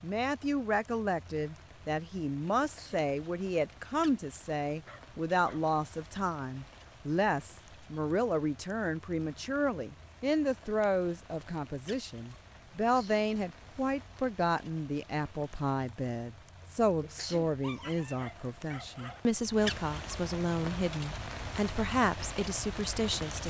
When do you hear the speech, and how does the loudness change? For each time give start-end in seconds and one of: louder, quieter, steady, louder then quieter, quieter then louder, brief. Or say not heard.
0.0-23.4 steady.